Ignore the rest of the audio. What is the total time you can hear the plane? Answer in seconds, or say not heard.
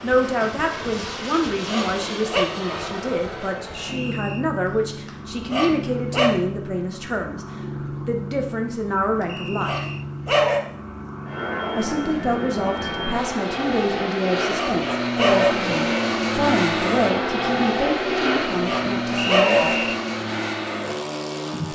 22 s.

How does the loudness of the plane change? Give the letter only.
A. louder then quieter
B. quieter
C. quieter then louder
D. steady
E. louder
E.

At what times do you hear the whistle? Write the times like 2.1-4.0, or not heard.
3.7-4.5, 9.2-10.1, 19.3-19.9.